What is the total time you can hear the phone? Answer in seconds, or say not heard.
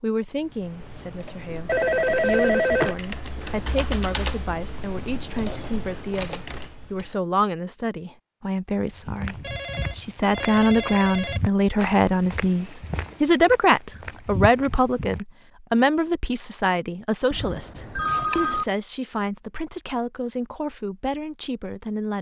5 s.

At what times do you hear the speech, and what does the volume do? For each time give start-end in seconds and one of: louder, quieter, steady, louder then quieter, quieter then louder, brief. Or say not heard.
0.0-22.1 louder then quieter.